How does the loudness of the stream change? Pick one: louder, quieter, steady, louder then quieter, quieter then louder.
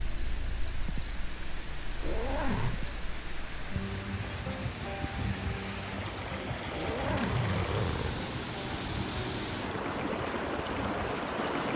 louder.